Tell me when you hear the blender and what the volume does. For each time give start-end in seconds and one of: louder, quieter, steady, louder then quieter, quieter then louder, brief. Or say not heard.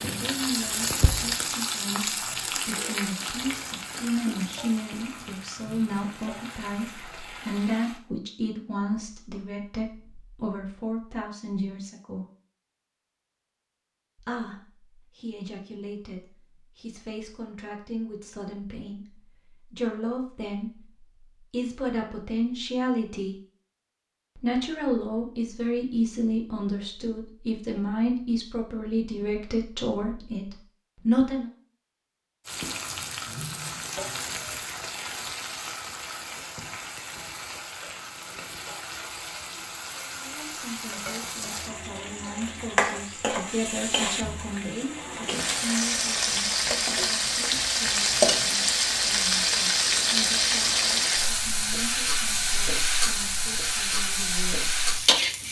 not heard.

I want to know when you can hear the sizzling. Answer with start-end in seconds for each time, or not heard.
0.0-8.0, 32.5-55.4.